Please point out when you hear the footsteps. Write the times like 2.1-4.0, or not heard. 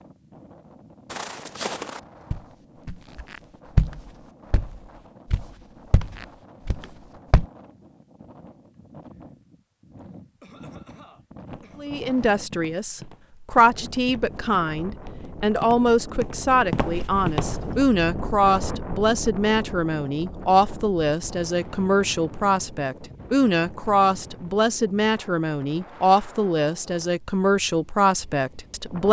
1.1-7.5, 11.4-17.8.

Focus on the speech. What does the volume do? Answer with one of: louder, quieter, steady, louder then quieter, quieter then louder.
steady.